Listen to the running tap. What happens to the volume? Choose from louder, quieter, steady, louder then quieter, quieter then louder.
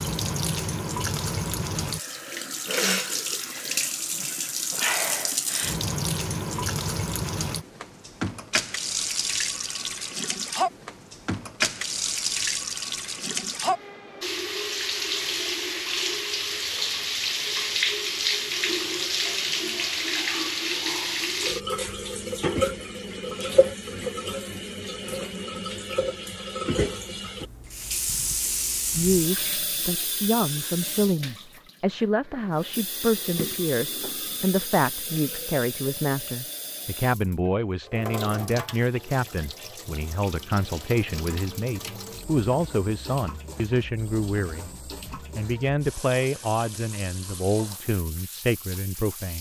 quieter.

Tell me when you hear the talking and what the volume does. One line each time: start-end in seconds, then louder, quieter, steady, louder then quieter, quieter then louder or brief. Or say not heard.
28.9-49.3 steady.